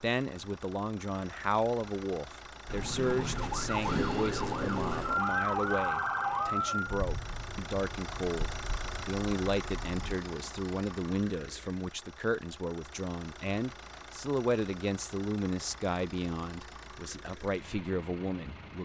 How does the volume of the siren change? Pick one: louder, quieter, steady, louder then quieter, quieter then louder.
quieter.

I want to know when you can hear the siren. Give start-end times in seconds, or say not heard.
2.6-10.2.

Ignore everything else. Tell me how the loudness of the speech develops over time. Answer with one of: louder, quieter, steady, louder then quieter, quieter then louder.
steady.